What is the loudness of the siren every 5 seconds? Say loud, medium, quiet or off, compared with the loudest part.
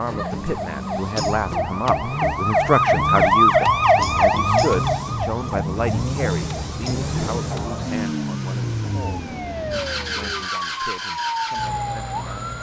loud, quiet, medium.